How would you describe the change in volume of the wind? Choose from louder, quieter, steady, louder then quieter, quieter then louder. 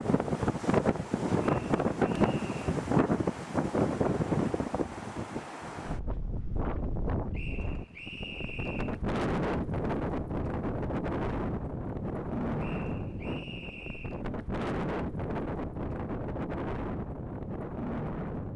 quieter.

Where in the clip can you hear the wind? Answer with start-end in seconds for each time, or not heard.
0.0-18.5.